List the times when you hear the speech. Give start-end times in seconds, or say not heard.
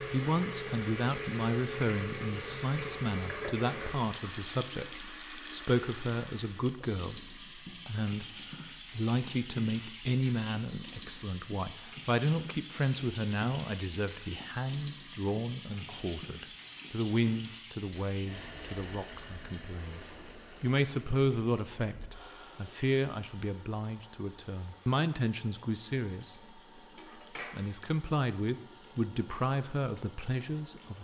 0.0-20.0, 20.6-26.6, 27.5-31.0.